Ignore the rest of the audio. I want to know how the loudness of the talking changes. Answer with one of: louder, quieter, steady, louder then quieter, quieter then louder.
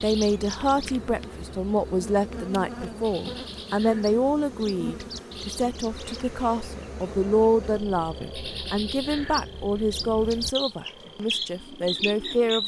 steady.